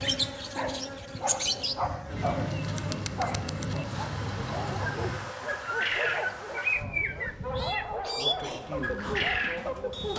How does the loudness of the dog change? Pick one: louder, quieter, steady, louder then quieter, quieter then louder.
steady.